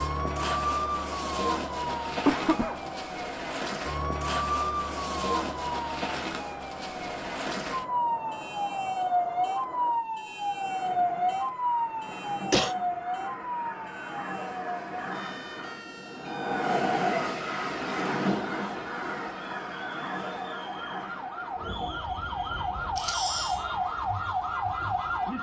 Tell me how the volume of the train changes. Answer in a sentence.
The loudness of the train goes up, then down.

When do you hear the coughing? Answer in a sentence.
You can hear the coughing from 2.2 to 2.8 s, from 12.1 to 12.8 s and from 22.9 to 23.6 s.